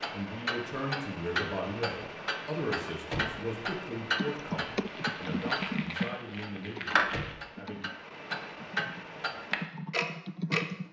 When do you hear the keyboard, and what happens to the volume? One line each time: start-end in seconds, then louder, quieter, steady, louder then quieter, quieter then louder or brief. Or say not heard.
4.2-10.8 quieter then louder.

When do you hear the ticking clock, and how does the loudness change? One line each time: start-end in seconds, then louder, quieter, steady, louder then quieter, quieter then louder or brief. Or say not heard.
0.0-10.7 steady.